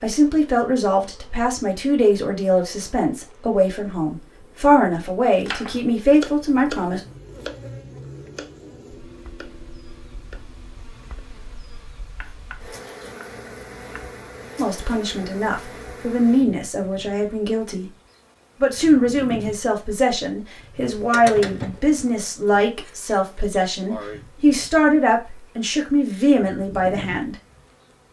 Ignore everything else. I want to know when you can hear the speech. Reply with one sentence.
You can hear the speech from 0.0 to 7.0 s, from 14.6 to 17.9 s and from 18.6 to 27.4 s.